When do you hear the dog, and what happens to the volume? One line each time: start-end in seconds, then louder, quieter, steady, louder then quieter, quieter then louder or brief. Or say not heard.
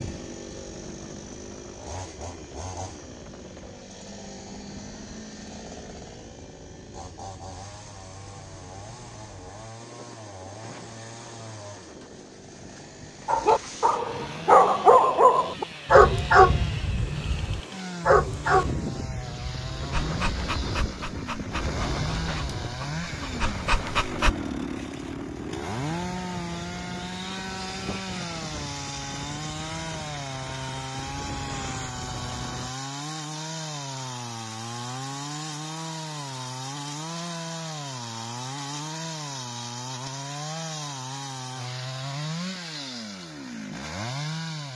13.2-24.4 quieter.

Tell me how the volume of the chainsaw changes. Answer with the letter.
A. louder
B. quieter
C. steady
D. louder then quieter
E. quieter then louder
A.